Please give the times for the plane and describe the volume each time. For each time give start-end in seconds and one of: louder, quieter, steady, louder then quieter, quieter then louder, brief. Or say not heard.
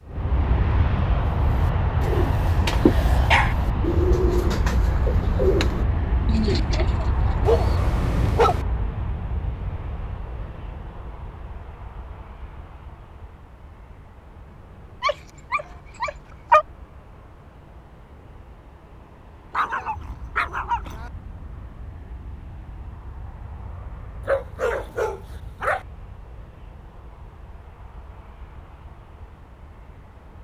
0.0-30.3 quieter.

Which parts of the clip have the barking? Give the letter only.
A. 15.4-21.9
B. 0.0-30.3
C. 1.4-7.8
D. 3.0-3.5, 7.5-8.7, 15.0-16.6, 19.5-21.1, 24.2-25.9
D.